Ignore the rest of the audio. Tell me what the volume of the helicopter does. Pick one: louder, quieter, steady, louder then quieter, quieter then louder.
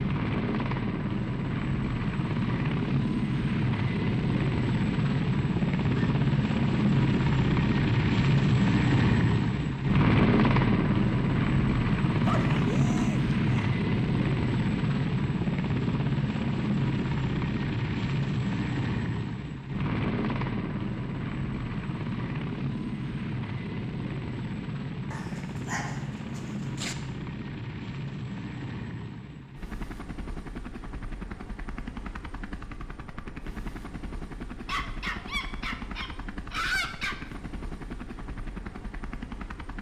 quieter.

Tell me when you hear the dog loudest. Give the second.
37 s.